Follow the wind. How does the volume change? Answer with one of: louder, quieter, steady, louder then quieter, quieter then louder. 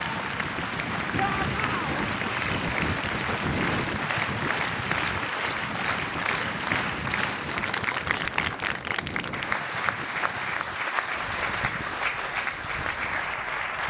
quieter.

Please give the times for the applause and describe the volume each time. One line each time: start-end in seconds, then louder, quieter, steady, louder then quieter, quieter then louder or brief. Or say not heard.
0.0-13.8 steady.